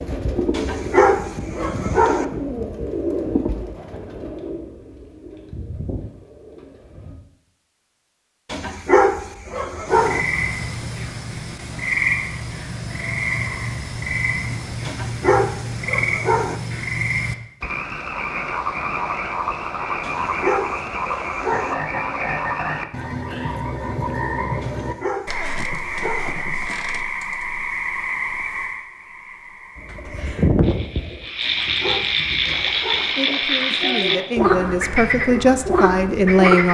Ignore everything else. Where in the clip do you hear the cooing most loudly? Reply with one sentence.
The volume of the cooing peaks at 31 seconds.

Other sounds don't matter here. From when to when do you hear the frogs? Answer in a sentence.
The frogs can be heard from 9.8 to 36.6 s.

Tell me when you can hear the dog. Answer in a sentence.
You can hear the dog from 0.5 to 2.2 s, from 8.5 to 10.2 s, from 14.8 to 16.6 s, from 20.0 to 21.8 s, from 24.6 to 26.4 s and from 31.4 to 33.1 s.